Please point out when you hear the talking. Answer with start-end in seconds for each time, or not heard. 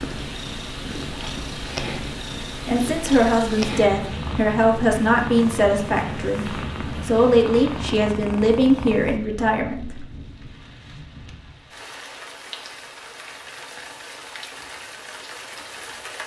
2.6-10.0.